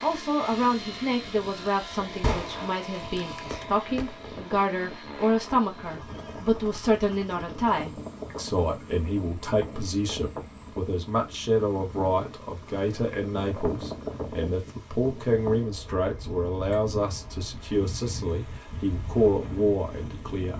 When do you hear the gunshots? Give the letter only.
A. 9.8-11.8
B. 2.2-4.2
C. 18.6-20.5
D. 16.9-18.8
B.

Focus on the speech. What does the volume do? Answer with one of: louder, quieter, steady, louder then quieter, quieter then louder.
steady.